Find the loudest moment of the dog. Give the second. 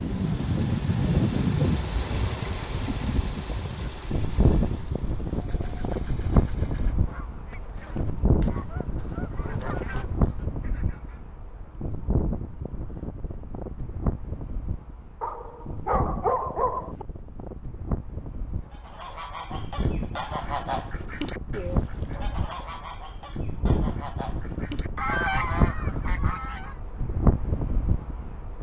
16 s.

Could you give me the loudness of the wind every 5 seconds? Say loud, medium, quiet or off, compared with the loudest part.
loud, loud, medium, medium, medium, loud.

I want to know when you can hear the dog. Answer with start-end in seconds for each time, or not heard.
15.2-17.1.